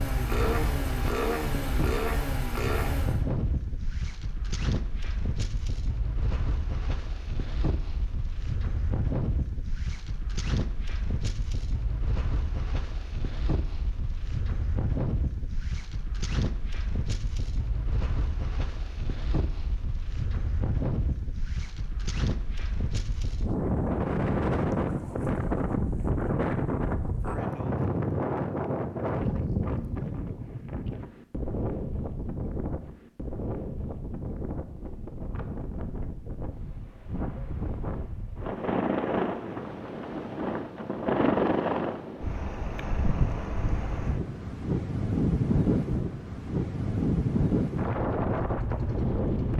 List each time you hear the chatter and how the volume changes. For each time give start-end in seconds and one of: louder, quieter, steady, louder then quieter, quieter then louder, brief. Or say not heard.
not heard.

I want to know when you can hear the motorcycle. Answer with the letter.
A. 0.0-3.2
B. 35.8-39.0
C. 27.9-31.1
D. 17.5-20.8
A.